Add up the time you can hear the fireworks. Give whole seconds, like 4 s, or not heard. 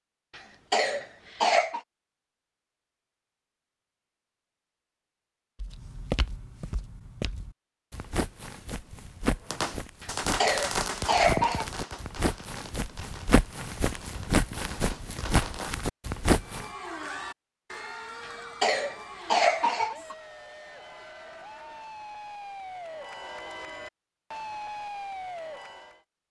6 s.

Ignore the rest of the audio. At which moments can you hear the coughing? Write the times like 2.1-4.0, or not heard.
0.3-1.8, 10.0-11.7, 18.2-20.1.